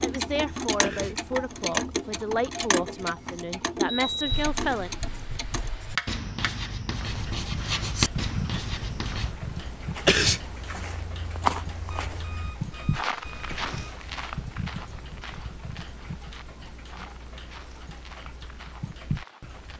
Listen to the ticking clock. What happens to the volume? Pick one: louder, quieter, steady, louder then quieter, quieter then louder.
quieter.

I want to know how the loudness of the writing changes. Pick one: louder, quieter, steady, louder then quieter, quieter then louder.
louder then quieter.